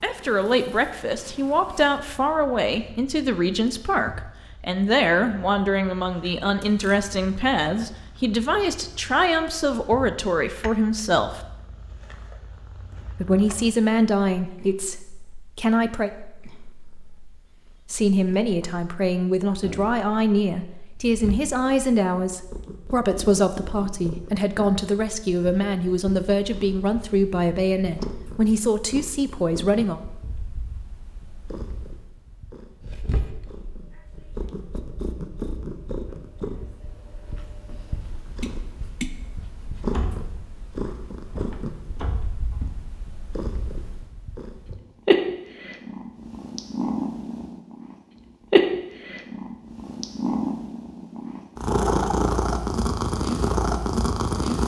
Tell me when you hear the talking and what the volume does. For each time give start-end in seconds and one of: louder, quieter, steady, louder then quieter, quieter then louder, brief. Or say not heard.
0.0-11.4 steady
13.2-16.1 brief
17.9-30.0 steady.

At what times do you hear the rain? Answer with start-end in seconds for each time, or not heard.
not heard.